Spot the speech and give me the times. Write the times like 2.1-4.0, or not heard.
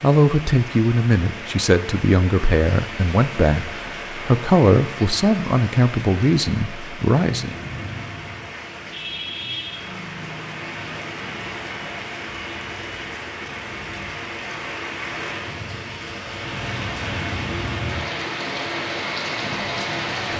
0.0-7.5.